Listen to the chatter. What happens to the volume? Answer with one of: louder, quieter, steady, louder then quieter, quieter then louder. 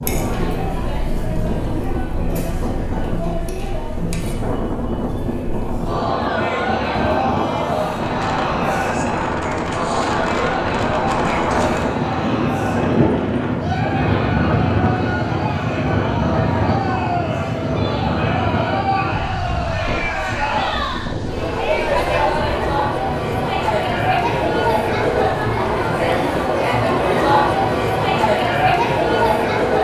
louder.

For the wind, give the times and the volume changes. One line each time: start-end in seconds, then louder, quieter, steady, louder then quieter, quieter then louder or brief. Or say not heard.
0.0-29.8 louder then quieter.